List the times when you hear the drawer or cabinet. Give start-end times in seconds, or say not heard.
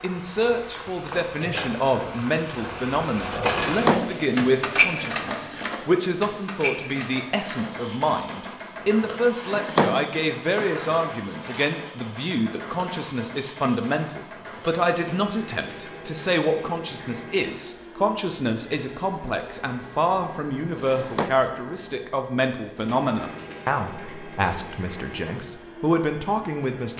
3.6-4.2, 9.3-11.8, 20.8-21.4.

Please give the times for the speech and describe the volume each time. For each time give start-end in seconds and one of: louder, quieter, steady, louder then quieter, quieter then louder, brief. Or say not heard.
0.0-26.9 steady.